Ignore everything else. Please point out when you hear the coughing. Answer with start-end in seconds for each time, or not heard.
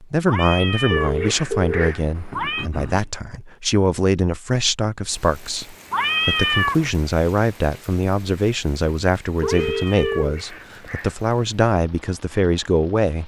not heard.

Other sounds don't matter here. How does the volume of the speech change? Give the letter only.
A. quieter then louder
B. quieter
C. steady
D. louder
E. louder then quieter
C.